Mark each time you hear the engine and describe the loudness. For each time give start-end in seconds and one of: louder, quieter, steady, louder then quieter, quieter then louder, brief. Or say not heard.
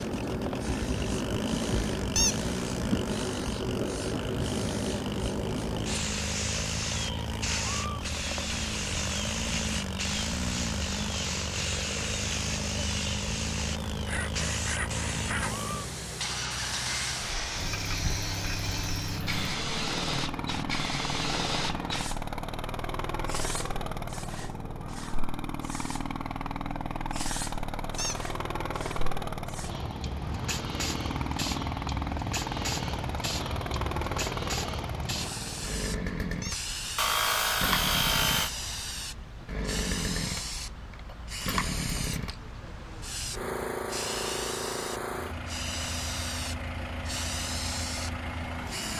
0.0-48.9 steady.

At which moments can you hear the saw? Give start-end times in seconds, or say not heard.
14.1-15.7, 37.0-38.5.